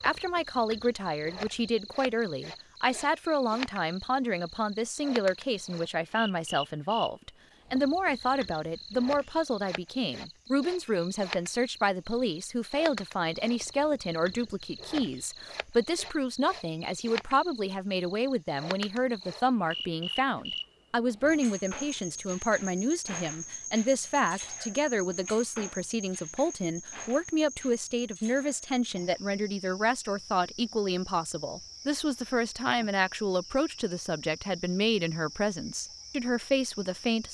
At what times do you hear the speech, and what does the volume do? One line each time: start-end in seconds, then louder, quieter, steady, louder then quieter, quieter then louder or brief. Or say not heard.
0.0-37.2 steady.